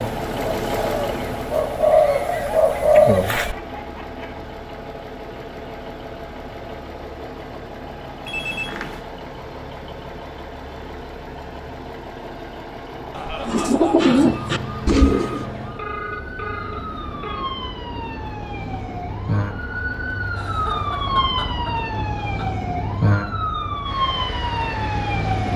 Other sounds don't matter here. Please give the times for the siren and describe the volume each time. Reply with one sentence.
The siren can be heard from 14.2 to 25.5 s, getting louder.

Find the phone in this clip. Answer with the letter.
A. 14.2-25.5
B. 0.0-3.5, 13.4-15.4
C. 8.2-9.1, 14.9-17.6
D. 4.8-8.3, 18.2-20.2
C.